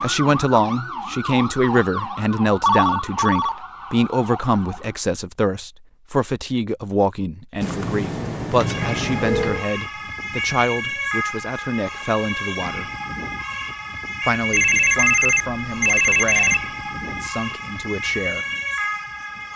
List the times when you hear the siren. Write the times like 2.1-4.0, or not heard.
0.0-5.0, 8.6-19.5.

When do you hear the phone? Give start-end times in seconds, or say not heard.
2.6-3.5, 7.6-9.7, 14.5-16.6.